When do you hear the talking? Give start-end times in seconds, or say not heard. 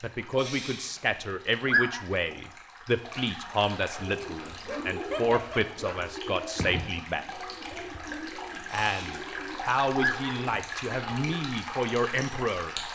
0.0-7.2, 8.7-12.8.